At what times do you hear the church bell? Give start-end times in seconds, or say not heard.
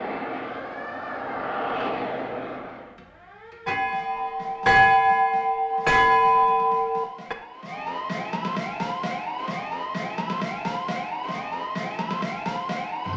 3.6-7.3.